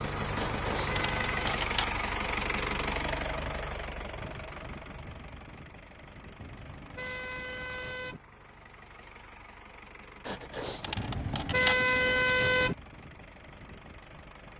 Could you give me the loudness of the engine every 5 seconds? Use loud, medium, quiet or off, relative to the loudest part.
loud, quiet, quiet.